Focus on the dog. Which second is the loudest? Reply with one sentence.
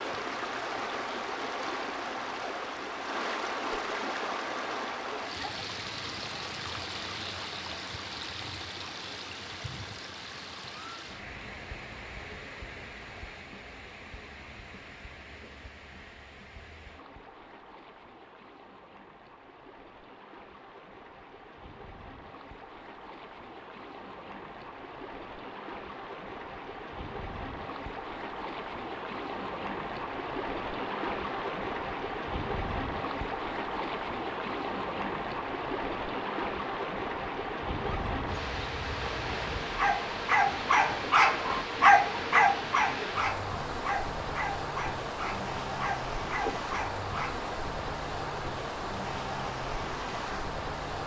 The loudest moment of the dog is at 42 seconds.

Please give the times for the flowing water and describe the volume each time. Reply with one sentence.
The flowing water can be heard from 0.0 to 51.0 s, getting quieter then louder.